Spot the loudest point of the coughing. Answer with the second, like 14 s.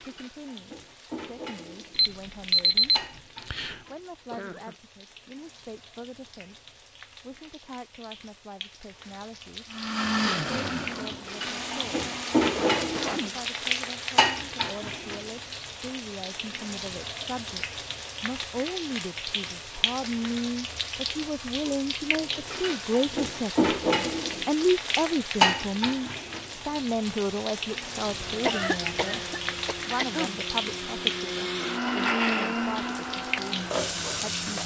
29 s.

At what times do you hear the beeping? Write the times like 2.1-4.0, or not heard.
1.9-3.8.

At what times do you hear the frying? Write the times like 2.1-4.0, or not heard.
0.0-34.6.